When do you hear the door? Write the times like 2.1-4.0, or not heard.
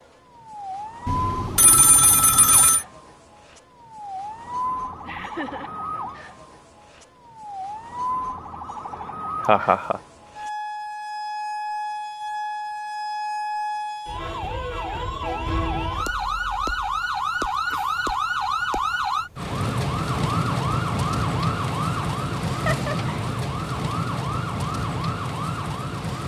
not heard.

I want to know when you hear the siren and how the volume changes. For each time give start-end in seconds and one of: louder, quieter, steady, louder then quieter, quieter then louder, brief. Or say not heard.
0.0-26.2 louder.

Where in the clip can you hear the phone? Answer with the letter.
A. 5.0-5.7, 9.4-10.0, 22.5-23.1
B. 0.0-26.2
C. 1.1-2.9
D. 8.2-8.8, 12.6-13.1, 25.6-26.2
C.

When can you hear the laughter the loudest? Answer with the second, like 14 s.
10 s.